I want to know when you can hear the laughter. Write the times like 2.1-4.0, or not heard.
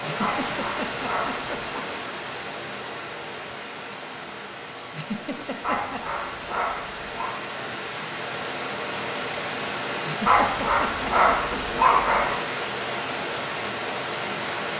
0.0-1.9, 4.9-6.0, 10.1-11.6.